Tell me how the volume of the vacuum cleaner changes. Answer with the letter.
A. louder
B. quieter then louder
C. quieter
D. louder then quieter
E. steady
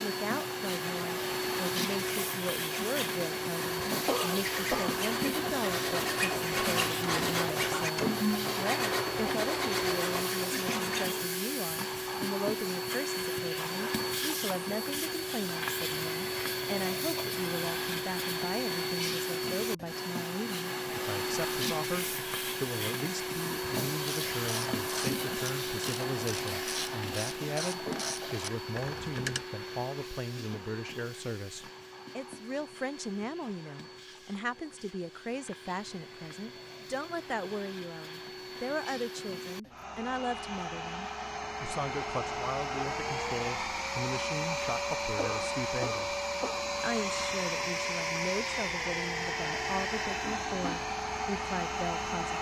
B.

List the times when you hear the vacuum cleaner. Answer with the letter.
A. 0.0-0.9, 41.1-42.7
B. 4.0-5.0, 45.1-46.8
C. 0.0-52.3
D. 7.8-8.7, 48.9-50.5
C.